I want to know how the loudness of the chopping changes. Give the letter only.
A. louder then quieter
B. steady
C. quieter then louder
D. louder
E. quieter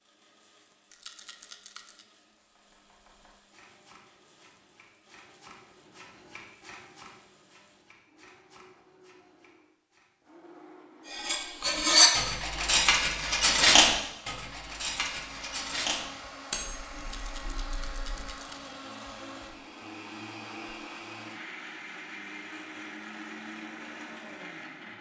A.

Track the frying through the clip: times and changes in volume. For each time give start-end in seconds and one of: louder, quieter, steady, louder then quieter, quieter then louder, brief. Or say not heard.
not heard.